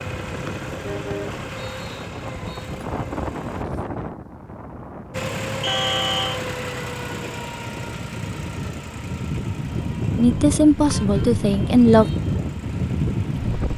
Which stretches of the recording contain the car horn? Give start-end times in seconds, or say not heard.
0.8-1.4, 5.7-6.4, 10.8-11.2.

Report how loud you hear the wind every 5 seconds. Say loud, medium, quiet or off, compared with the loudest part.
medium, medium, loud.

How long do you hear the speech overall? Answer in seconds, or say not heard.
2 s.